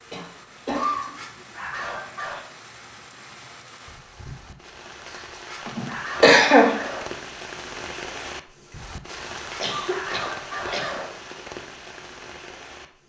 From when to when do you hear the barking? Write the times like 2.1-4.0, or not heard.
0.7-2.5, 5.0-7.0, 9.1-11.1.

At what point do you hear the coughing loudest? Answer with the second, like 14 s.
6 s.